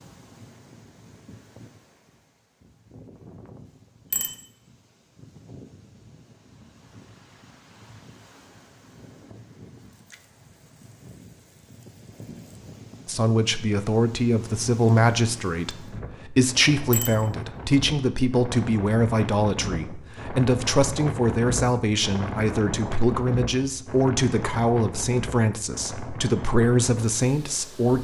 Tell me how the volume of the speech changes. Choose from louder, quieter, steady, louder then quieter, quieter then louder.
steady.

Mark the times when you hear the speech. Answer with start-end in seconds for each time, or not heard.
13.1-27.9.